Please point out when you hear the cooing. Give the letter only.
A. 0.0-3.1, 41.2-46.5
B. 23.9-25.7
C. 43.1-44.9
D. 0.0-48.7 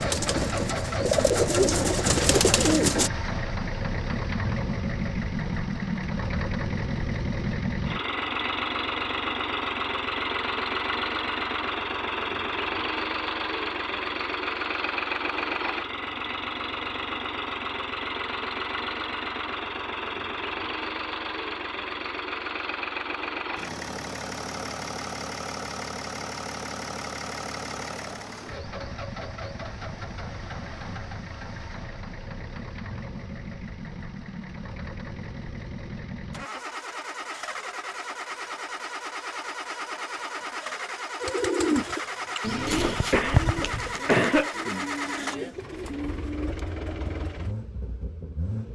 A.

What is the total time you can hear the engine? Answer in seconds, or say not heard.
49 s.